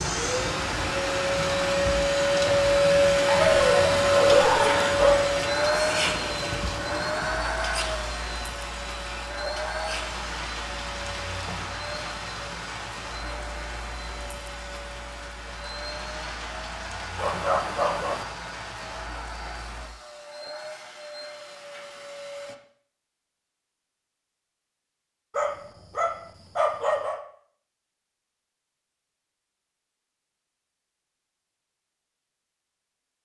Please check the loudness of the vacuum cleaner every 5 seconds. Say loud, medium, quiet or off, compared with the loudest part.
loud, medium, quiet, quiet, quiet, off, off.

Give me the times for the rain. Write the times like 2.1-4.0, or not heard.
0.0-19.9.